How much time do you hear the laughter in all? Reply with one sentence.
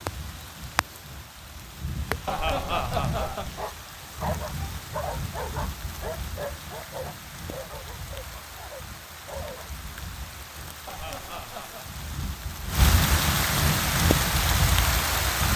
The laughter can be heard for 2 seconds in total.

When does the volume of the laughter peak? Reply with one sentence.
The volume of the laughter peaks at 3 seconds.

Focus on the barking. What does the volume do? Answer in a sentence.
The loudness of the barking goes down.